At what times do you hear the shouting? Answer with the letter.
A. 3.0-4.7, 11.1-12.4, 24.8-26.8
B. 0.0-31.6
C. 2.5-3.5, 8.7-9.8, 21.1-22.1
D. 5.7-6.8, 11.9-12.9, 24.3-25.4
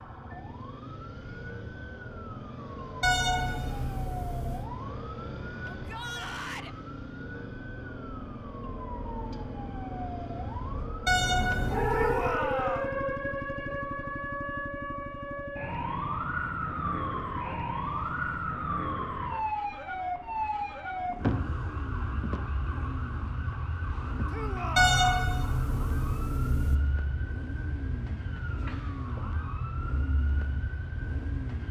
D.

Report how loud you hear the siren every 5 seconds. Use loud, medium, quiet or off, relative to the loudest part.
medium, medium, loud, loud, loud, medium, medium.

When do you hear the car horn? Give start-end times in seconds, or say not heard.
3.0-4.7, 11.1-12.4, 24.8-26.8.